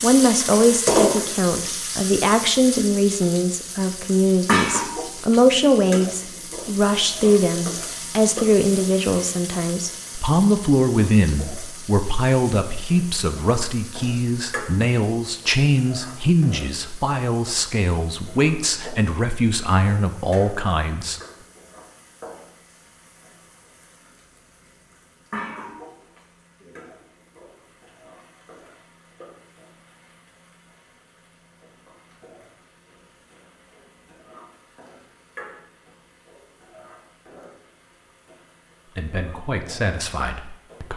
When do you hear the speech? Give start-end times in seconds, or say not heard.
0.0-21.2, 39.0-40.9.